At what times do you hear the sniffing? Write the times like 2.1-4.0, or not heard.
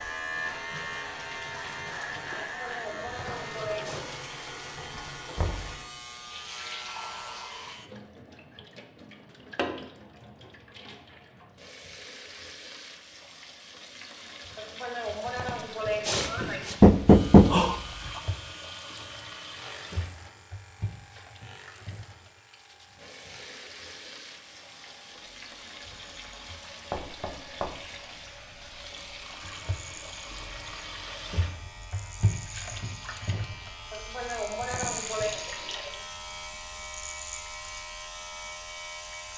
2.4-4.0, 14.6-16.8, 33.9-35.4.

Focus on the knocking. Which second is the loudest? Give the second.
17 s.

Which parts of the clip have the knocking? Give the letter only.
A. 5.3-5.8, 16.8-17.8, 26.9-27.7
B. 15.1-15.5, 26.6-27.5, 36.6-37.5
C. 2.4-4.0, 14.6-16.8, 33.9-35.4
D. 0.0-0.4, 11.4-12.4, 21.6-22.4
A.